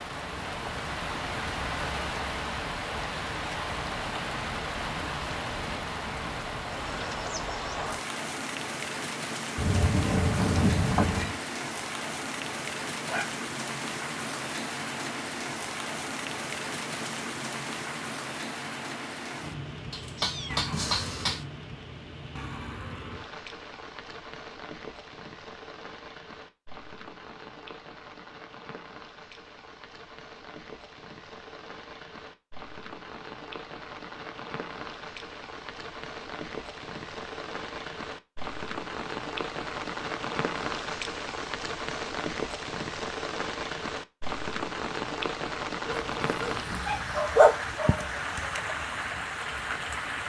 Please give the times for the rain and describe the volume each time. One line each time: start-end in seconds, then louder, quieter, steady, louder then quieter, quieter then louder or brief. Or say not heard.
0.0-50.2 quieter then louder.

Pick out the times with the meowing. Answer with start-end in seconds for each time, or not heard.
9.6-11.3, 19.9-21.4, 45.9-47.2.